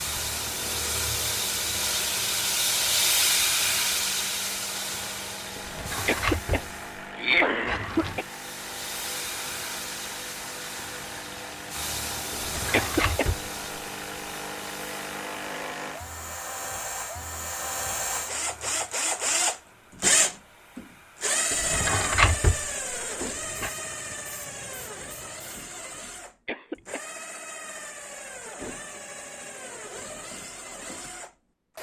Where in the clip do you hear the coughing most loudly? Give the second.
7 s.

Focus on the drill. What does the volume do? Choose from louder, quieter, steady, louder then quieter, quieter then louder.
louder then quieter.